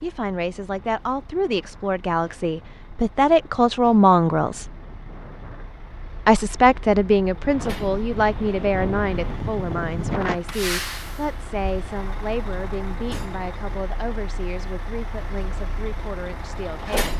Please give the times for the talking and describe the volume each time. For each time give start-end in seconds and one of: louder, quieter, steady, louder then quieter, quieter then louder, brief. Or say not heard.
0.0-4.7 louder
6.2-17.1 quieter.